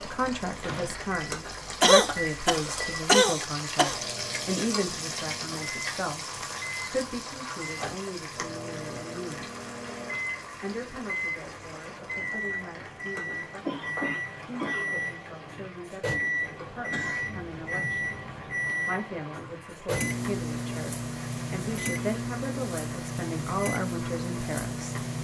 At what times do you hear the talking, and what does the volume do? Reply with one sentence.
You can hear the talking from 0.1 to 9.5 s, getting quieter; and from 10.6 to 25.1 s, getting louder.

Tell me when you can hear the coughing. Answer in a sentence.
You can hear the coughing from 1.8 to 4.0 s, from 13.6 to 14.9 s and from 16.8 to 18.8 s.